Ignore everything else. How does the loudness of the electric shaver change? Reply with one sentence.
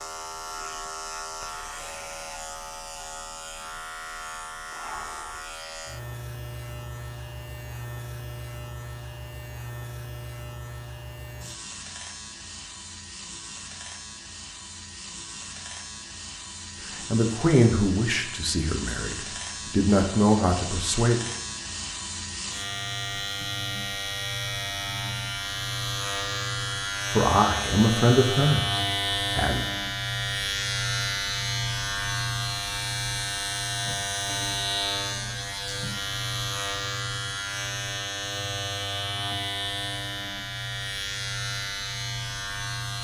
The volume of the electric shaver goes up.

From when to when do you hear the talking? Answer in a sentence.
The talking can be heard from 16.9 to 21.2 s and from 27.1 to 29.6 s.